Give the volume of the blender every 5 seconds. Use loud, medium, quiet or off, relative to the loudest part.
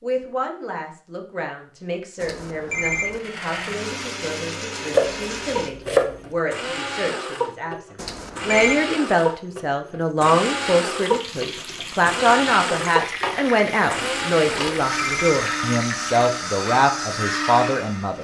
medium, loud, loud, loud.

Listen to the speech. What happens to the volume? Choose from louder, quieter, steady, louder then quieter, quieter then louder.
louder.